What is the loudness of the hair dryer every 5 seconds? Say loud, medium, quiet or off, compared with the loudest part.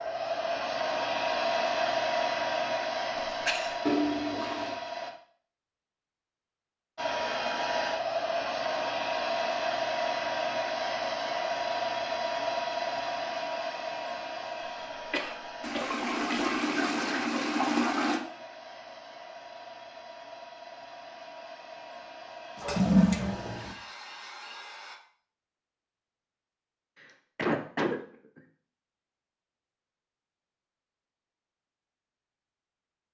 loud, loud, loud, quiet, quiet, off, off.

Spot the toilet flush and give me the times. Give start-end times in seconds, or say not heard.
3.9-4.8, 15.6-18.2, 22.6-23.8.